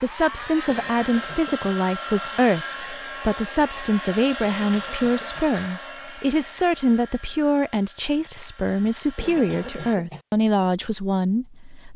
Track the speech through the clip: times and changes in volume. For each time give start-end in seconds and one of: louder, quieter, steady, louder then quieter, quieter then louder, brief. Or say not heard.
0.0-11.9 steady.